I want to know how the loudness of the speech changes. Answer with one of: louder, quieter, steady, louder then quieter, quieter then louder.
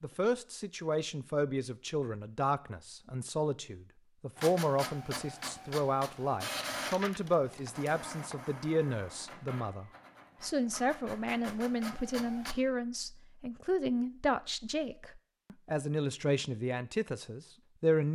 steady.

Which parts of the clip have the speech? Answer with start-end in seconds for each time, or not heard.
0.0-18.1.